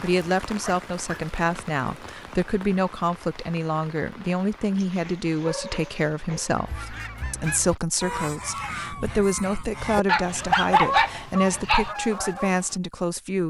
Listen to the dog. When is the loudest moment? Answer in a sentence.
The volume of the dog peaks at 11 seconds.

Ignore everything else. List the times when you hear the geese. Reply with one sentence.
You can hear the geese from 6.5 to 12.8 s.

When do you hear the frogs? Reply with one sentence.
You can't hear the frogs here.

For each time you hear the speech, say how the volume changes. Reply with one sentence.
The speech can be heard from 0.0 to 13.4 s, at a steady volume.